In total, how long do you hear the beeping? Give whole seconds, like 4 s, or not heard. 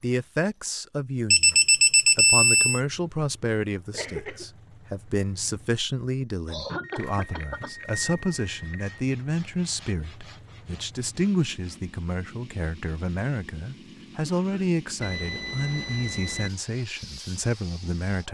5 s.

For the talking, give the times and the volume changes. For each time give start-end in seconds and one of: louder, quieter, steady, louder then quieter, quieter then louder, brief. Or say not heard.
0.0-18.3 steady.